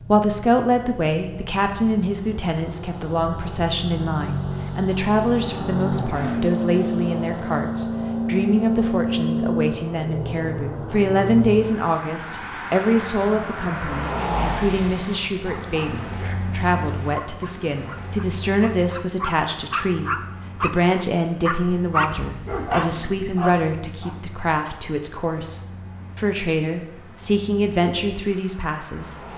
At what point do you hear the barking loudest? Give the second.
22 s.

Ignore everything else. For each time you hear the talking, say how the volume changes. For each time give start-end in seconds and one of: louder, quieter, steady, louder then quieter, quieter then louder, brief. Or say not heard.
0.1-29.1 steady.